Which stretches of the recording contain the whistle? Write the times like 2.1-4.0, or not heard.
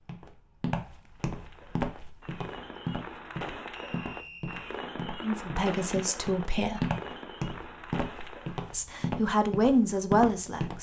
3.7-4.8.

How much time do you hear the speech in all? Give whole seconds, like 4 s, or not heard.
4 s.